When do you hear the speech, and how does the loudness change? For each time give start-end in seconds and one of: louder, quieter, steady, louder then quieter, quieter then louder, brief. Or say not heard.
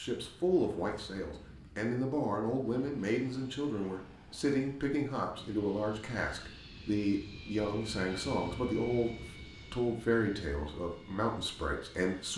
0.0-12.3 steady.